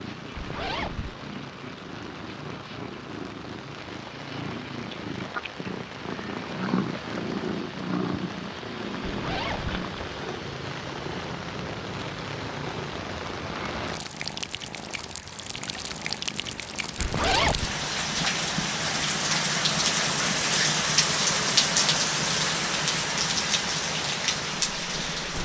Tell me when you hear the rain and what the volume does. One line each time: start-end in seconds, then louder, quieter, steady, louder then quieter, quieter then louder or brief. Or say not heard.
0.0-25.3 louder.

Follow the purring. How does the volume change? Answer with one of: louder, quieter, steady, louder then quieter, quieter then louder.
louder then quieter.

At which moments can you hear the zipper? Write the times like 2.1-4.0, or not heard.
0.3-1.1, 9.0-9.8, 16.9-17.7.